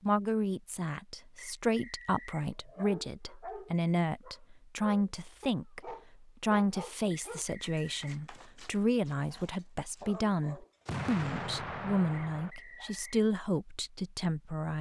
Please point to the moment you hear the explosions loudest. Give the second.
11 s.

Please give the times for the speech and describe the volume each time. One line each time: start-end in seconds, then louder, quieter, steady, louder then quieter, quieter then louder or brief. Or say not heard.
0.0-14.7 steady.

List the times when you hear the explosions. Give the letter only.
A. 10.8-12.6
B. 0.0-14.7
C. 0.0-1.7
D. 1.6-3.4
A.